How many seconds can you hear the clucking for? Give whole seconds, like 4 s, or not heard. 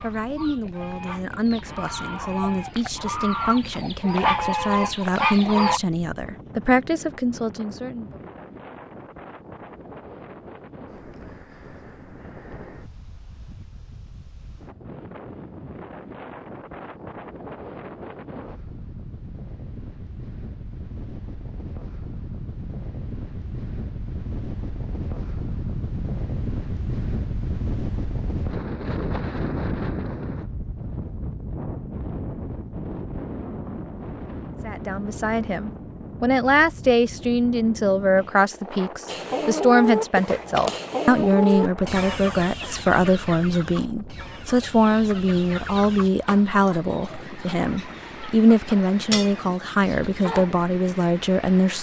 17 s.